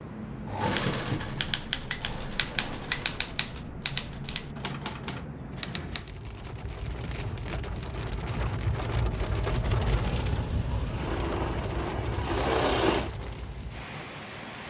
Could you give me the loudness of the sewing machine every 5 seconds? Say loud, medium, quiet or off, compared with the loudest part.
medium, off, loud.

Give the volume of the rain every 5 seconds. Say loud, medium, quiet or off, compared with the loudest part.
medium, loud, loud.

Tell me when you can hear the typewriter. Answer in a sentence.
The typewriter can be heard from 0.7 to 6.1 s.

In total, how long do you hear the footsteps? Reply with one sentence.
You can't hear the footsteps here.